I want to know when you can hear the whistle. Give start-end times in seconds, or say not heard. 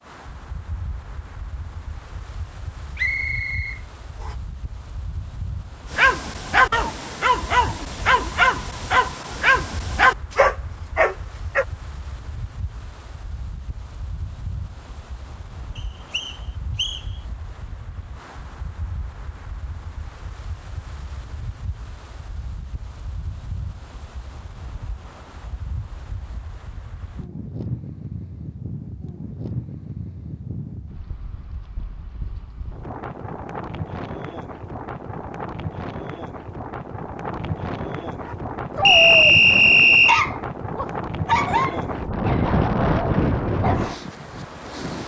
3.0-4.3, 15.8-17.1, 38.9-40.2.